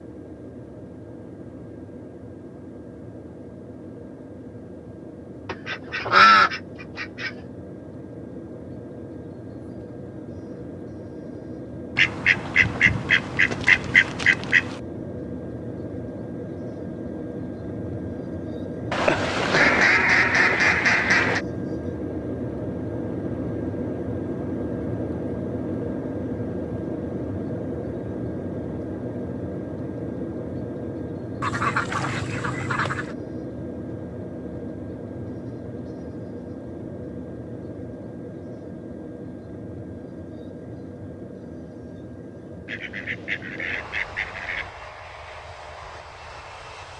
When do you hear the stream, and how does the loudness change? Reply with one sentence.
You can't hear the stream here.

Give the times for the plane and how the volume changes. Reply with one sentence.
You can hear the plane from 0.0 to 46.9 s, getting louder then quieter.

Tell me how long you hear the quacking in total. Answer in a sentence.
You can hear the quacking for 11 seconds altogether.